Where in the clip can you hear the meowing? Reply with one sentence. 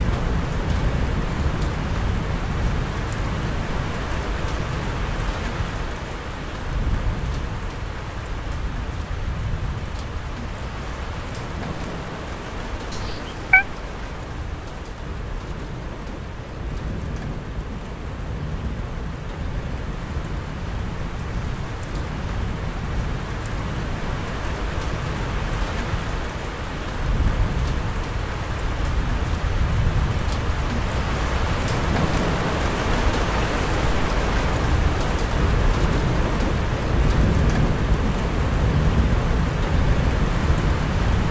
The meowing can be heard from 12.9 to 13.7 s.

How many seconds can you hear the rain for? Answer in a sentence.
The rain can be heard for 41 seconds in total.